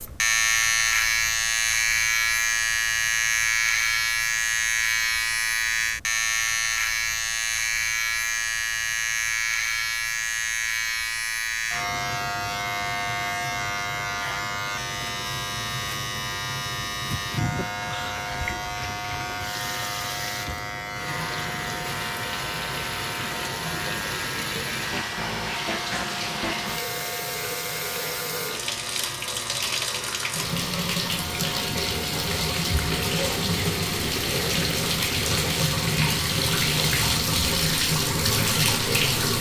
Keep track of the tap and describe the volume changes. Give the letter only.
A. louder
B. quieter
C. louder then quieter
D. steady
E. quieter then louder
A.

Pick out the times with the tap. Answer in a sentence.
The tap can be heard from 17.1 to 39.3 s.